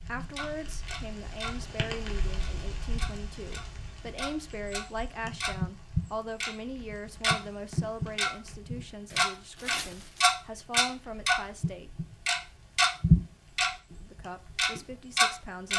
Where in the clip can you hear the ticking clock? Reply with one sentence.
You can hear the ticking clock from 0.1 to 1.6 s, from 2.4 to 13.7 s and from 14.6 to 15.7 s.